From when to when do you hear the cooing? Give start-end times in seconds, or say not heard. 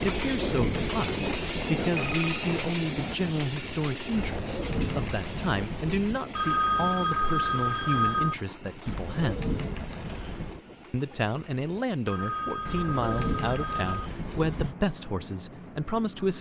0.0-1.8, 4.2-6.2, 8.8-10.7, 12.7-14.8.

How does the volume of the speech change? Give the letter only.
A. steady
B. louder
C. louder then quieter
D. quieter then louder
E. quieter
A.